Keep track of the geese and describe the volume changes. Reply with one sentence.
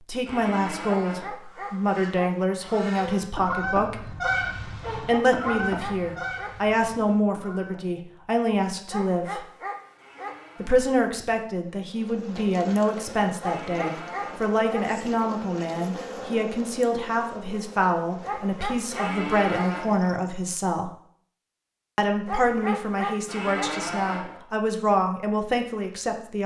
The volume of the geese goes up, then down.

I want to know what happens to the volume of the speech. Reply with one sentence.
The loudness of the speech stays about the same.